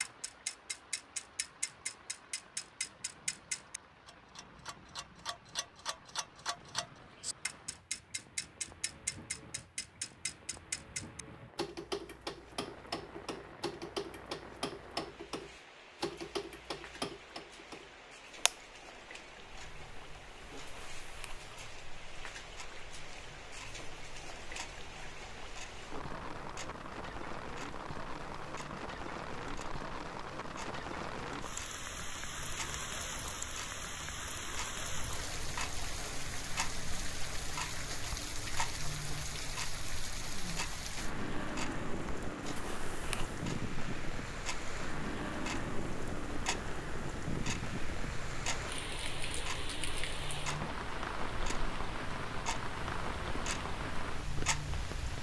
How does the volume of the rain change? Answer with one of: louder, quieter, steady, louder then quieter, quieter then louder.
louder.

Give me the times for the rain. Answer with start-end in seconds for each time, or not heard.
0.0-55.1.